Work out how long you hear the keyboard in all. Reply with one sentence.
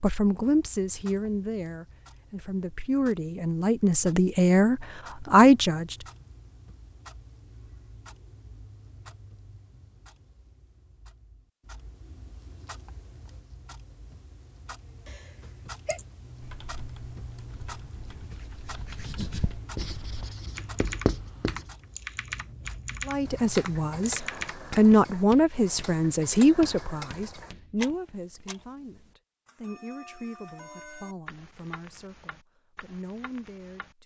The keyboard can be heard for 9 seconds in total.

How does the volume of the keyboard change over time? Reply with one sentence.
The loudness of the keyboard goes up.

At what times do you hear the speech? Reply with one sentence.
The speech can be heard from 0.0 to 6.0 s and from 23.1 to 34.0 s.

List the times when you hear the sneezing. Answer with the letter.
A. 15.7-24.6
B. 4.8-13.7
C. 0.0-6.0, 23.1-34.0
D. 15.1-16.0
D.